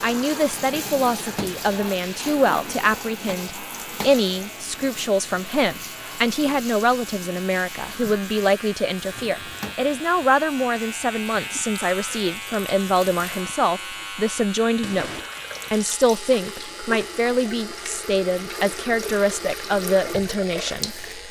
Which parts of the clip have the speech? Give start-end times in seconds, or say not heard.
0.0-21.1.